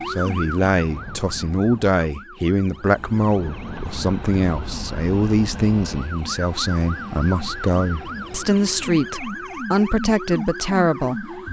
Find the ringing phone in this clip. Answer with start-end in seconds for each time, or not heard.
not heard.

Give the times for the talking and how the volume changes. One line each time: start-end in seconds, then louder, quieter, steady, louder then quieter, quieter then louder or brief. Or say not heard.
0.1-11.4 steady.